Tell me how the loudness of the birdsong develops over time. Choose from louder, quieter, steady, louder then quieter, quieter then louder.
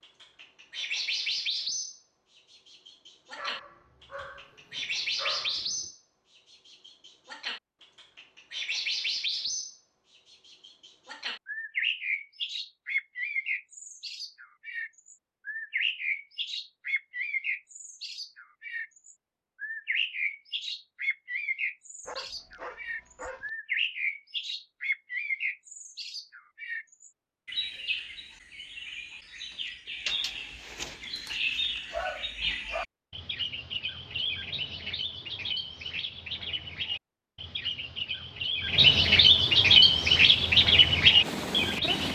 louder.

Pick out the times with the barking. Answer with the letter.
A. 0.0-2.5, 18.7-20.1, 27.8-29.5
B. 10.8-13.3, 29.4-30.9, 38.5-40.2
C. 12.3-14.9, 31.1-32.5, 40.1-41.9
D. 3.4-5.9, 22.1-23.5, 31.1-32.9
D.